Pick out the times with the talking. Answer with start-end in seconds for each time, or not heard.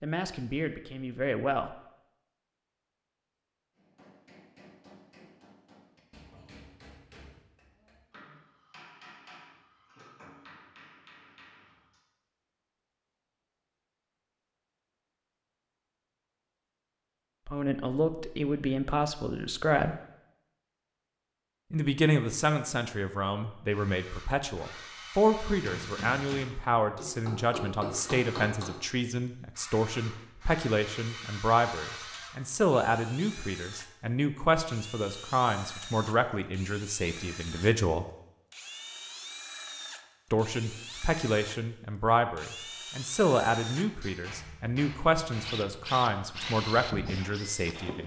0.0-1.7, 17.4-19.9, 21.7-38.0, 40.3-48.0.